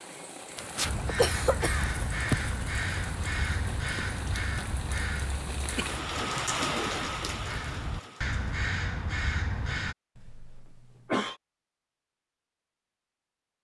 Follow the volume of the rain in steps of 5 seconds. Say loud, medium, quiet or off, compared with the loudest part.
medium, loud, off.